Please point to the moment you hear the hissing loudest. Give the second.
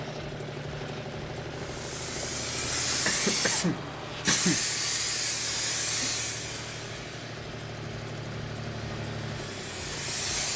5 s.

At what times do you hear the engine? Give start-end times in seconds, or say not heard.
0.0-10.5.